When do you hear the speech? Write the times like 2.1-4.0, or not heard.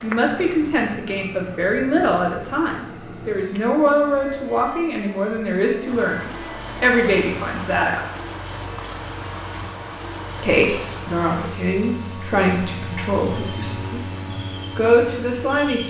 0.0-8.0, 10.4-15.8.